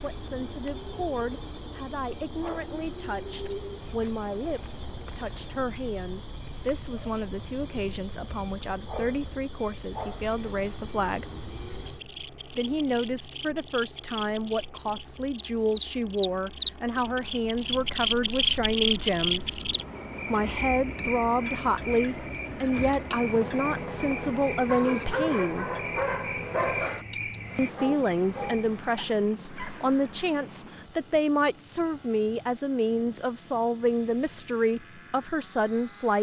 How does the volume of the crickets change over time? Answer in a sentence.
The volume of the crickets goes up, then down.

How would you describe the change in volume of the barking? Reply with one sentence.
The volume of the barking goes down.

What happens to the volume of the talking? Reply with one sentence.
The loudness of the talking goes up.